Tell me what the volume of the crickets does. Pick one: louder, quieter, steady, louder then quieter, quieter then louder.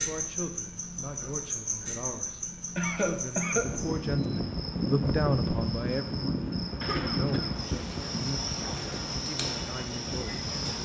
steady.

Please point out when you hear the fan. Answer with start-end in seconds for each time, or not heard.
3.5-10.8.